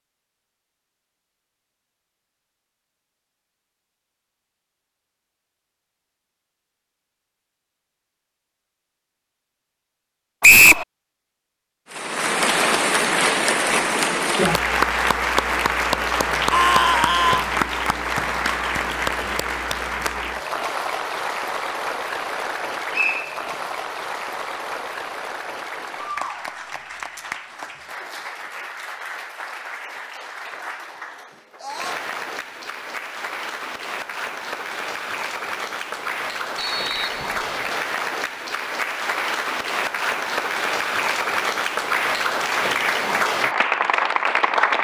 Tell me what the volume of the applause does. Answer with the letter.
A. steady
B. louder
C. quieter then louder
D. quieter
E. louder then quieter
C.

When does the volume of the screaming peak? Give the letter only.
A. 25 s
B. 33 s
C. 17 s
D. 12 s
C.